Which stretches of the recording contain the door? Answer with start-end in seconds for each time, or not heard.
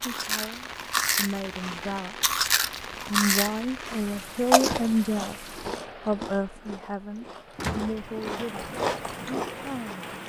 7.5-8.0.